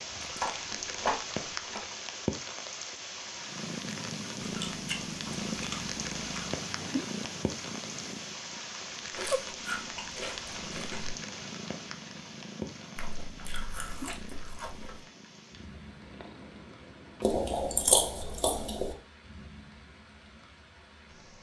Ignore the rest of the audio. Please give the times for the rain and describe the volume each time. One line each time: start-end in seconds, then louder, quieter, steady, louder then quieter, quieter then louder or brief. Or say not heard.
0.0-21.3 quieter.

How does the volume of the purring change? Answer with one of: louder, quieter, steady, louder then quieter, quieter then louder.
quieter.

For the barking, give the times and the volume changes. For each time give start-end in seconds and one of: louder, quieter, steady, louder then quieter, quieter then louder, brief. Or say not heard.
not heard.